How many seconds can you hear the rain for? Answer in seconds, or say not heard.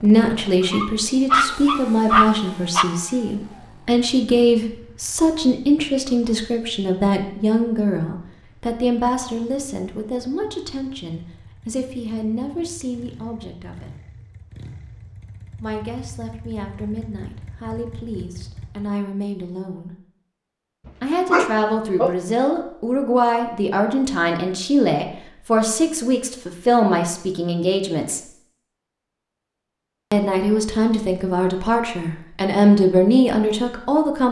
not heard.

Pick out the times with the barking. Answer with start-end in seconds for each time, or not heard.
0.6-2.9, 21.3-22.1.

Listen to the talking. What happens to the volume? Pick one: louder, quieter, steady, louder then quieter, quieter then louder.
quieter then louder.